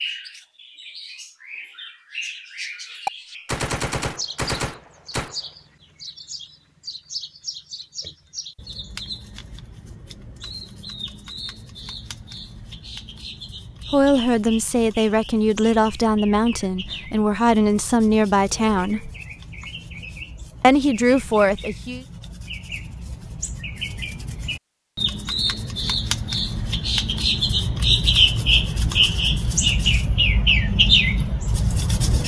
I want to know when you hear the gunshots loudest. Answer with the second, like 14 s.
4 s.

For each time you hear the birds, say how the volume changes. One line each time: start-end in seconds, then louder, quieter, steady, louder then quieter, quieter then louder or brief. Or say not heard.
0.0-32.2 louder.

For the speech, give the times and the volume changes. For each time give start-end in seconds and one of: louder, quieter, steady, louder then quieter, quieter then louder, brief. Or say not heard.
13.9-19.1 steady
20.6-22.1 brief.